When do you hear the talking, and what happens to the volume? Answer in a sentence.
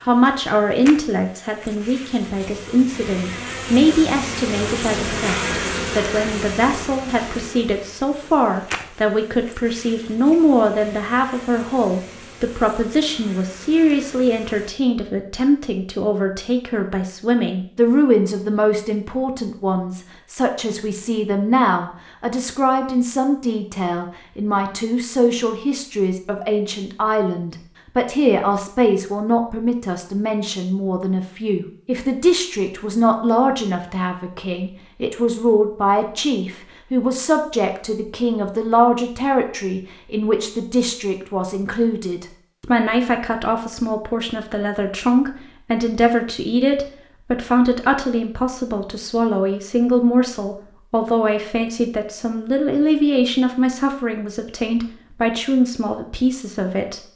The talking can be heard from 0.0 to 57.1 s, at a steady volume.